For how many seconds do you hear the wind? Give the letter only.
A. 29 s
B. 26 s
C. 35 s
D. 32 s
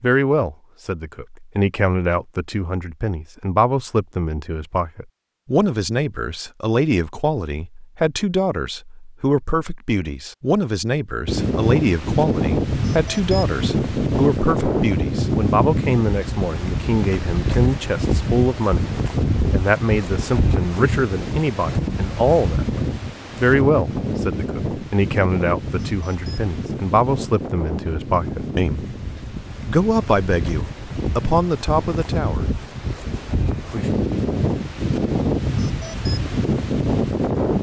B.